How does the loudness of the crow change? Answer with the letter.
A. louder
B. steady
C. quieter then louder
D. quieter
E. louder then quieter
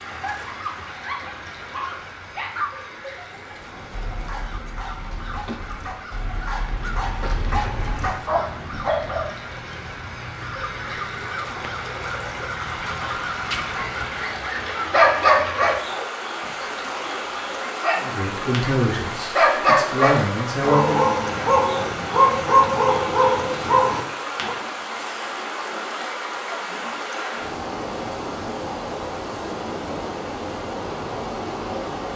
A.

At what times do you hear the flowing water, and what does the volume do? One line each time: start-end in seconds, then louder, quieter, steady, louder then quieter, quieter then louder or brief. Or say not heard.
0.0-32.1 louder.